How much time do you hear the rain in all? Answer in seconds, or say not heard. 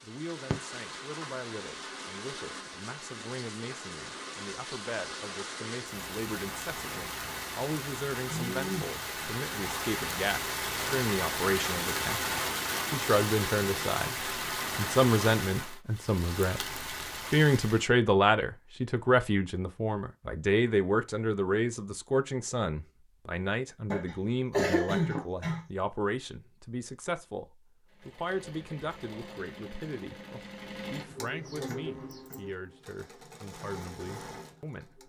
18 s.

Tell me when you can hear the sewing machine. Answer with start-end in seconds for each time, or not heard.
27.9-35.0.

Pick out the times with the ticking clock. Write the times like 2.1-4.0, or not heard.
not heard.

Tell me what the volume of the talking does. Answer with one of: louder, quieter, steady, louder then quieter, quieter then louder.
louder then quieter.